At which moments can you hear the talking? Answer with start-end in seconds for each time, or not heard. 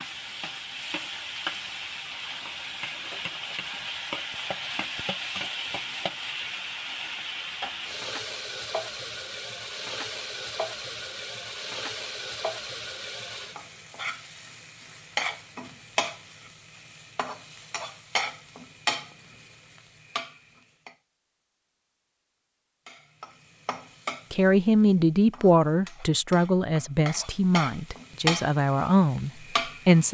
24.3-30.0.